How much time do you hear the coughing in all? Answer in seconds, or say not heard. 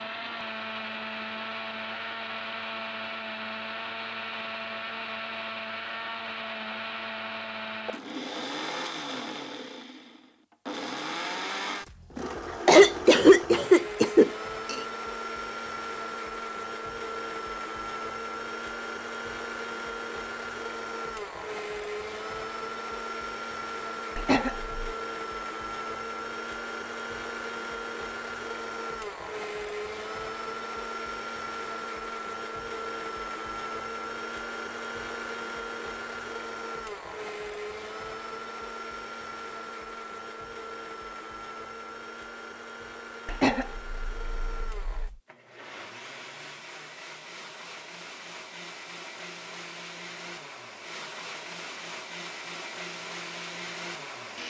5 s.